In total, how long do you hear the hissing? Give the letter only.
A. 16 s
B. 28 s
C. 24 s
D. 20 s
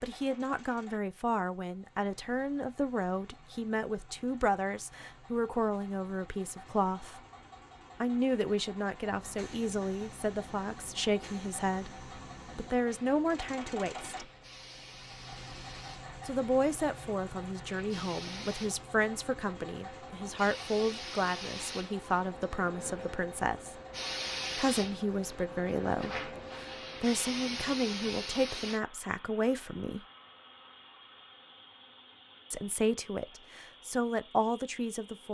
D.